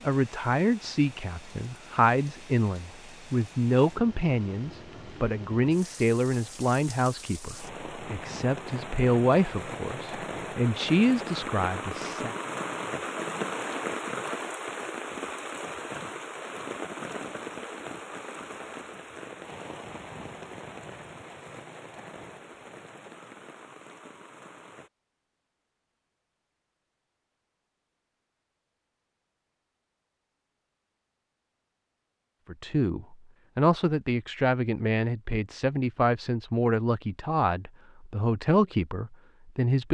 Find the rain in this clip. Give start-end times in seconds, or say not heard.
0.0-24.9.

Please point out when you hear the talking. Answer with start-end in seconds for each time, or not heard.
0.0-12.3, 32.5-39.9.